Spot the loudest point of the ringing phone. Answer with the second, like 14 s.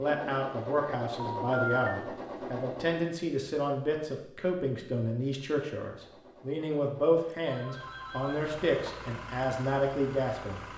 2 s.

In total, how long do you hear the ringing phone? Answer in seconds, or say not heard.
2 s.